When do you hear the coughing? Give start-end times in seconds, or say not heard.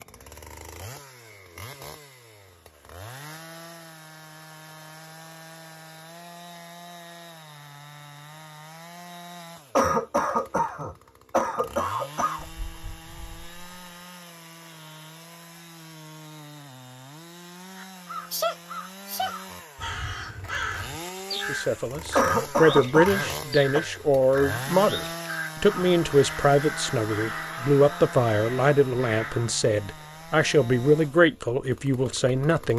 9.8-12.4, 22.1-23.8.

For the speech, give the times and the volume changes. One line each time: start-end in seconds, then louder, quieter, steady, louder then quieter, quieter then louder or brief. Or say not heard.
21.4-32.7 steady.